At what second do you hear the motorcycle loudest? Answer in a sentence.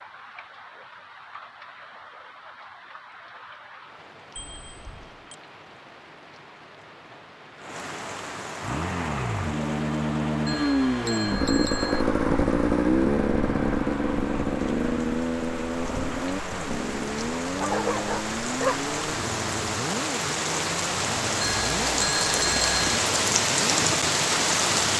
The volume of the motorcycle peaks at 13 seconds.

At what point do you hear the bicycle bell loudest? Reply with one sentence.
The loudest moment of the bicycle bell is at 23 seconds.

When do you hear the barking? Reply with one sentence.
You can hear the barking from 17.5 to 18.8 s.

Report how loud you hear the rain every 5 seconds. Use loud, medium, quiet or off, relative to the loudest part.
quiet, quiet, quiet, medium, loud.